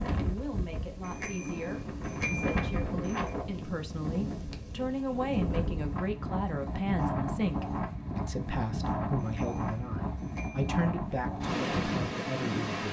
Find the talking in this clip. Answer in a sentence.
You can hear the talking from 0.1 to 12.8 s.